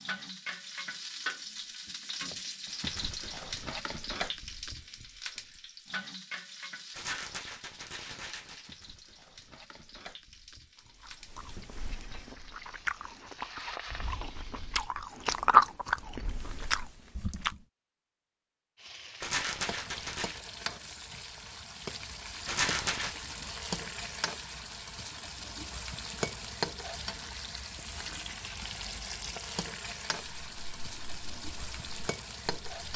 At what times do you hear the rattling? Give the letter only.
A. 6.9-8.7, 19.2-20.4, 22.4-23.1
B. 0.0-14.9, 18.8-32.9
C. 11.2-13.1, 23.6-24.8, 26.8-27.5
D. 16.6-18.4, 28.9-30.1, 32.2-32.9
A.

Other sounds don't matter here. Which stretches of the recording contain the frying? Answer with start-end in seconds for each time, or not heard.
0.0-14.9, 18.8-32.9.